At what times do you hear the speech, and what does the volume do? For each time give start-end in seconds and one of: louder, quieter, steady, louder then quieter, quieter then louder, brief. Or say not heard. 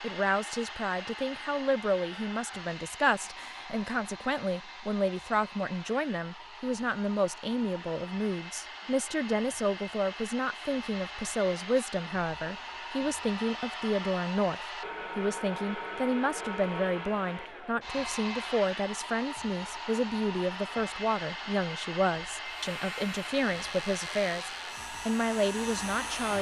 0.0-26.3 steady.